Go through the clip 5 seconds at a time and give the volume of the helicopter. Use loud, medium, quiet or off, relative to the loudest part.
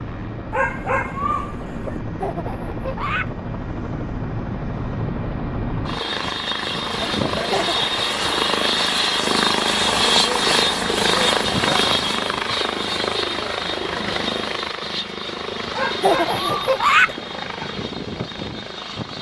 medium, loud, loud, medium.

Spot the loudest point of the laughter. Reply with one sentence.
The loudest moment of the laughter is at 17 seconds.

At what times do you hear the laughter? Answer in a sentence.
The laughter can be heard from 2.2 to 3.3 s, from 7.5 to 8.2 s and from 16.0 to 17.1 s.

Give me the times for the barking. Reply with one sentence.
You can hear the barking from 0.5 to 2.0 s and from 15.7 to 17.5 s.